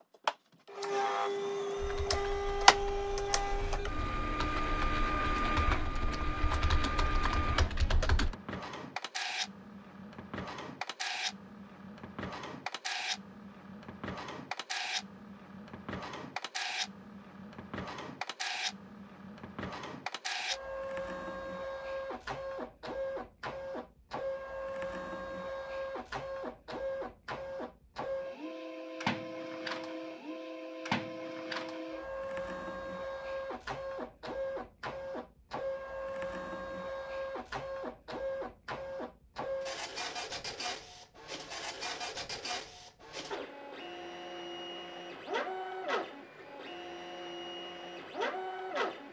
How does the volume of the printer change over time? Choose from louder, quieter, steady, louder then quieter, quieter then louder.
quieter.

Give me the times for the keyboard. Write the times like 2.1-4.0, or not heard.
1.8-8.3.